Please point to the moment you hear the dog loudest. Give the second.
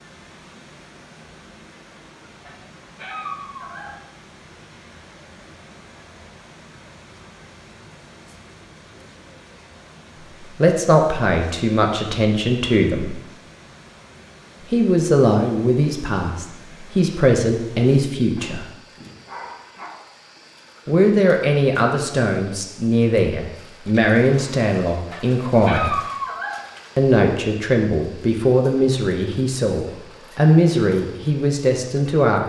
26 s.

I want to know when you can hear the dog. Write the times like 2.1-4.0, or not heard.
2.4-4.0, 18.4-19.9, 24.9-26.6.